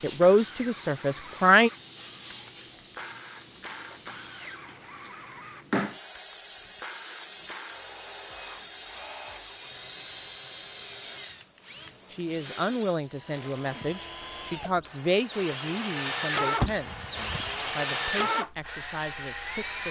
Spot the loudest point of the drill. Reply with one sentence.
The volume of the drill peaks at 18 seconds.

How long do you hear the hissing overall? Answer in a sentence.
The hissing can be heard for 13 seconds in total.